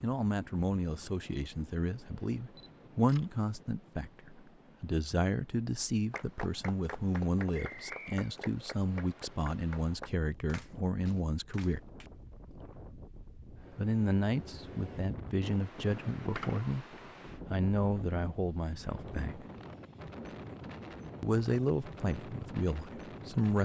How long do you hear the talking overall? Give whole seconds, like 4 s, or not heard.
19 s.